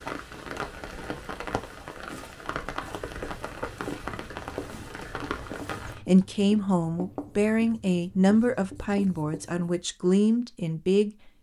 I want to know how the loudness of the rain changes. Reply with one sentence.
The loudness of the rain stays about the same.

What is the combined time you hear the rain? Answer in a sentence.
The rain can be heard for 6 seconds in total.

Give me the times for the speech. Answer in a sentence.
The speech can be heard from 6.0 to 11.3 s.